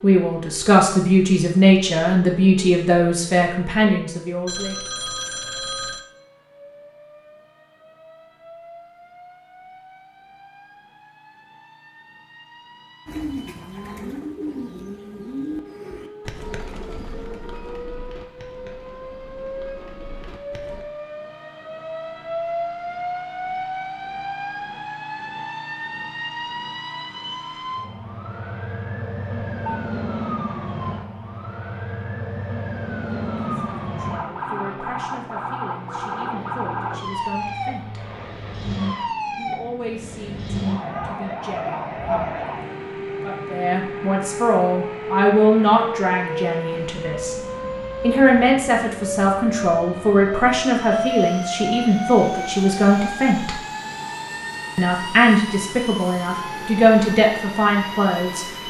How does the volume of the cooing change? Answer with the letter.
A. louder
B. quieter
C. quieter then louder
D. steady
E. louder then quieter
B.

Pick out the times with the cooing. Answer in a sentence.
You can hear the cooing from 13.1 to 20.9 s.